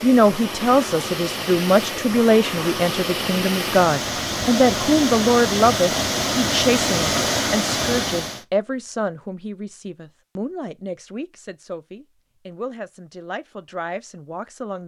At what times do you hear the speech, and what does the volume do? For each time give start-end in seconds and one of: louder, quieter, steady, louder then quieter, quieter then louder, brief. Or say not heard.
0.0-14.8 quieter.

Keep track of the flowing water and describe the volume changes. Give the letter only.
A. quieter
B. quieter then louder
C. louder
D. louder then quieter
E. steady
C.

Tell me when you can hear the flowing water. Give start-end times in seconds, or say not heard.
0.0-8.4.